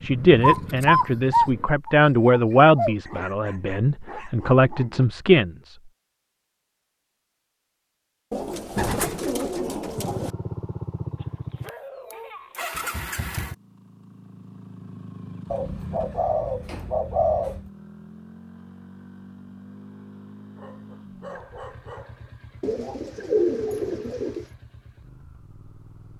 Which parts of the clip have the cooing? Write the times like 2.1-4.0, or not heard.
0.4-3.0, 8.3-10.3, 15.5-17.7, 22.6-24.4.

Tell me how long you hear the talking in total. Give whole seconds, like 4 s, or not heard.
6 s.